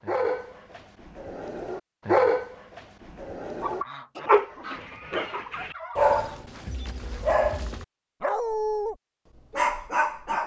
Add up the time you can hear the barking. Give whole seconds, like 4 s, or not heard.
10 s.